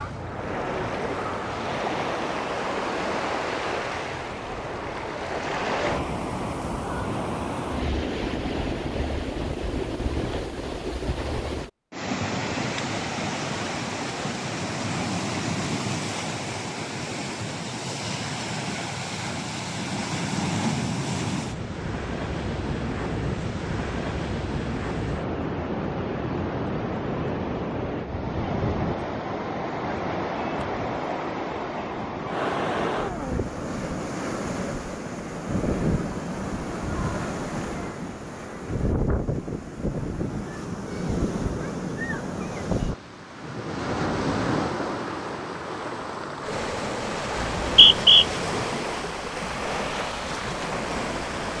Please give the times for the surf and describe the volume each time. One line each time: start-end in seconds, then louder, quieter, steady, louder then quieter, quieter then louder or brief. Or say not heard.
0.0-51.5 steady.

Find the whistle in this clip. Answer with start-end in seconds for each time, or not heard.
47.4-48.2.